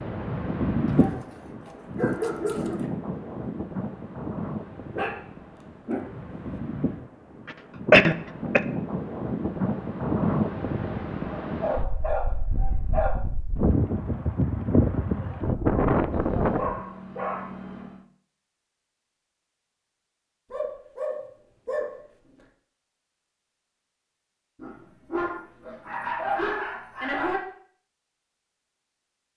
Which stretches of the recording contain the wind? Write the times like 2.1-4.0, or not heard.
0.0-16.8.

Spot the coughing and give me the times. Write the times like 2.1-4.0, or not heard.
7.9-8.6.